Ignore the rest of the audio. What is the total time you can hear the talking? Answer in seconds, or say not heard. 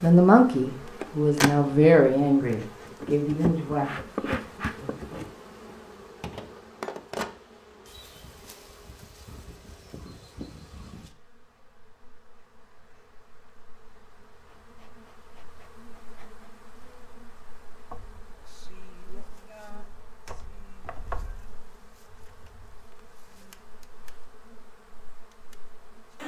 5 s.